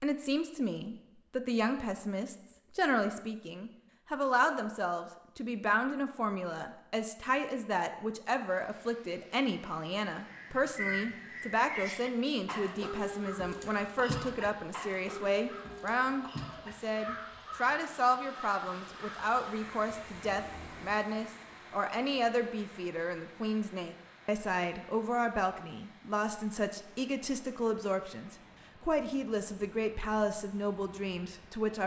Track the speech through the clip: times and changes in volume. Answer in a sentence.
You can hear the speech from 0.0 to 31.8 s, at a steady volume.